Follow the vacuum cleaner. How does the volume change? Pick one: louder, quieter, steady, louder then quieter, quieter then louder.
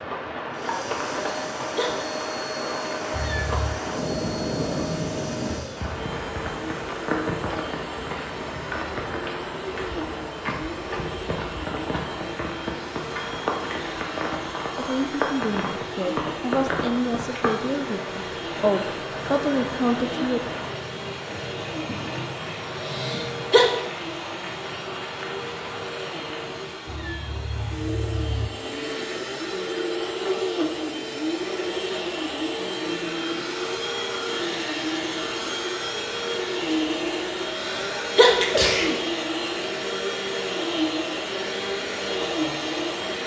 louder.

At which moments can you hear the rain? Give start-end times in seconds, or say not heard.
0.0-26.9.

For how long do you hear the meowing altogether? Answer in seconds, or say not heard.
2 s.